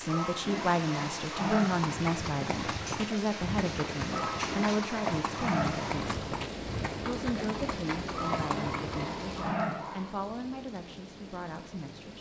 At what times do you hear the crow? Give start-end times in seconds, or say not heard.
not heard.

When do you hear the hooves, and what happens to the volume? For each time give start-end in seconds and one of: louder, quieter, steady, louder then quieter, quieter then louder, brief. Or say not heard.
1.6-9.1 steady.